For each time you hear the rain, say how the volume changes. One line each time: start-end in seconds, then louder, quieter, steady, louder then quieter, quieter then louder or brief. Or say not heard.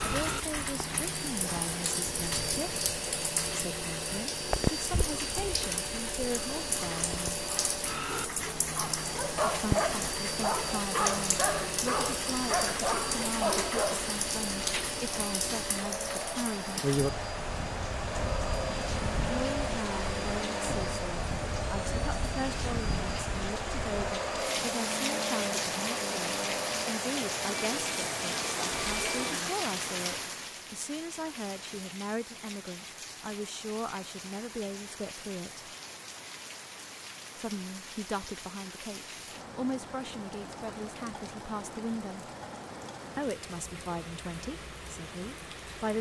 0.0-45.9 quieter.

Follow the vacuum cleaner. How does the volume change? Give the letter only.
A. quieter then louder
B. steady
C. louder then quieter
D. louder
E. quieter
B.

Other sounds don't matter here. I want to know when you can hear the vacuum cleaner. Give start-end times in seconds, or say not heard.
0.0-29.5.